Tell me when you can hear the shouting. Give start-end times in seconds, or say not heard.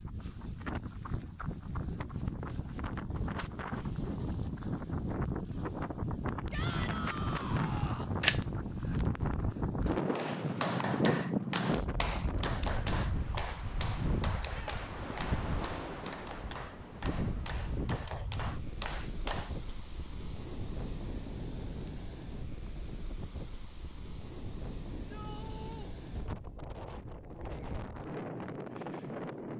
6.5-8.2, 14.3-14.8, 24.9-25.9.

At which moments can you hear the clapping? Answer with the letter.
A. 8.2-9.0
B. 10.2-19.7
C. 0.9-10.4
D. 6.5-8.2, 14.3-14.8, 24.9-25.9
B.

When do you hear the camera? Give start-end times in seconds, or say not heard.
8.2-9.0.